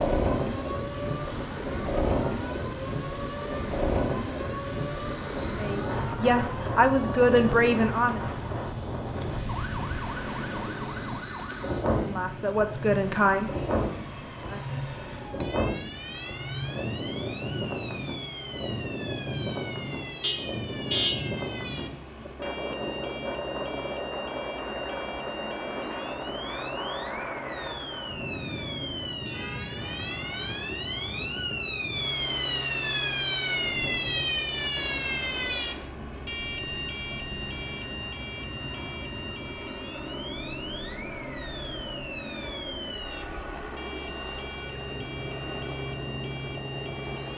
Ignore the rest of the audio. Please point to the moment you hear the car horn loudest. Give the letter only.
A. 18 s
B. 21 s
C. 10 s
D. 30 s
B.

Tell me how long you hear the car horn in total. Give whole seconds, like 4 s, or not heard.
2 s.